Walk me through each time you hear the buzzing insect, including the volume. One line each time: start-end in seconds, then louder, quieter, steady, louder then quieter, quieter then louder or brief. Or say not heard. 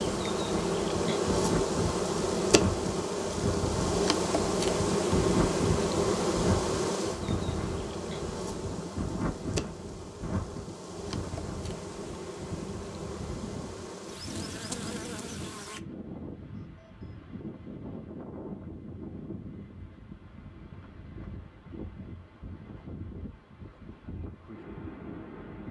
0.0-15.8 quieter.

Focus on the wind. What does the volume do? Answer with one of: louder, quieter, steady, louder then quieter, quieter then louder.
quieter.